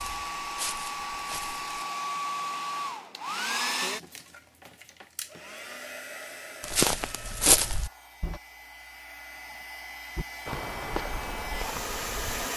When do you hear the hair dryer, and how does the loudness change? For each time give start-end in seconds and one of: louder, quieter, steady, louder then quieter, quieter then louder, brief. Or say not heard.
0.0-12.5 quieter then louder.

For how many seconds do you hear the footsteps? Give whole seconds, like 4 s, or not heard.
6 s.